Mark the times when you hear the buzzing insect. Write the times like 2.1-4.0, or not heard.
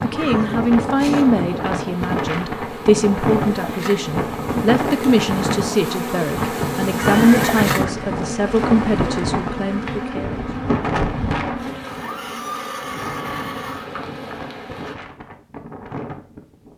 0.0-14.9.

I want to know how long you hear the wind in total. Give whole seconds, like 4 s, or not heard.
17 s.